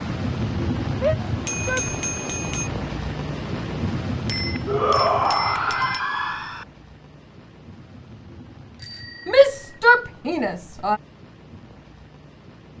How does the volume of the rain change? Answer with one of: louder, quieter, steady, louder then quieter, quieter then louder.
quieter.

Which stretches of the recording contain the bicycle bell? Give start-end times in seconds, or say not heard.
1.2-2.7, 4.2-6.0, 8.8-9.8.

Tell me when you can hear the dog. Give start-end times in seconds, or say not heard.
not heard.